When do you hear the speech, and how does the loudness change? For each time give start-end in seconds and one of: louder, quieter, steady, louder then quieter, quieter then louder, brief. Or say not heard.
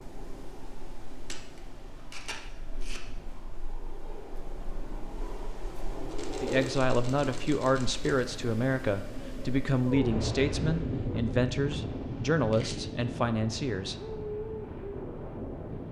6.4-13.9 steady.